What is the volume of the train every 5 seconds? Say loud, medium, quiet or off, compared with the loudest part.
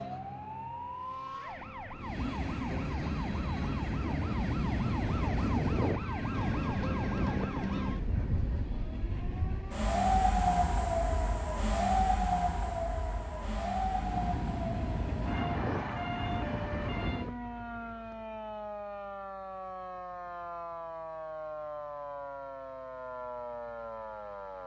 loud, loud, medium, loud, off.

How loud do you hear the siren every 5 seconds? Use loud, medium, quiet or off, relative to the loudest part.
medium, medium, loud, medium, medium.